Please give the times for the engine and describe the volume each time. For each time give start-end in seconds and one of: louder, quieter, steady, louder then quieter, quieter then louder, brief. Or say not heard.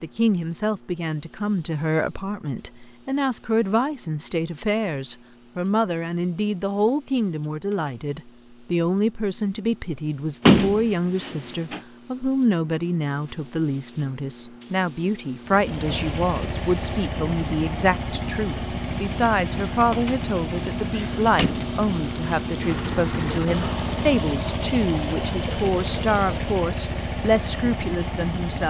15.4-28.6 steady.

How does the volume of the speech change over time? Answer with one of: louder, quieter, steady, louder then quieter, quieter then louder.
steady.